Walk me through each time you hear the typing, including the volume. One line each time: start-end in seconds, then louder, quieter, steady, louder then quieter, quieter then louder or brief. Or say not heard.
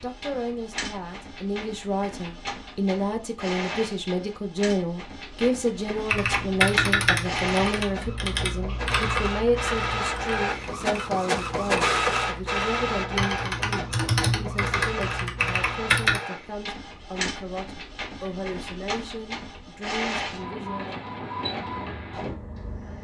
6.1-16.2 quieter then louder.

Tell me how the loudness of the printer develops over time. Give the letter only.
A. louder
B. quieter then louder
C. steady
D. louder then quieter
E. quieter
D.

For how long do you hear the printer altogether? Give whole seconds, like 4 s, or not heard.
23 s.